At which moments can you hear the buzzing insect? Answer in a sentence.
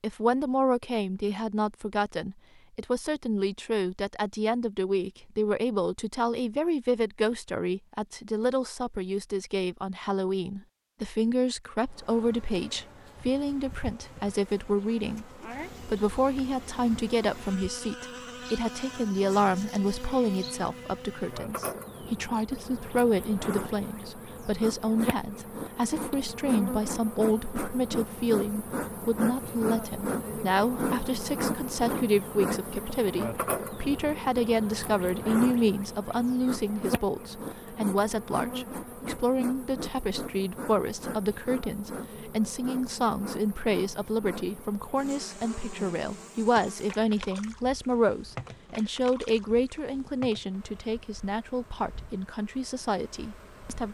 The buzzing insect can be heard from 11.8 to 53.9 s.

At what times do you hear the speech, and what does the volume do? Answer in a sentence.
The speech can be heard from 0.0 to 53.9 s, at a steady volume.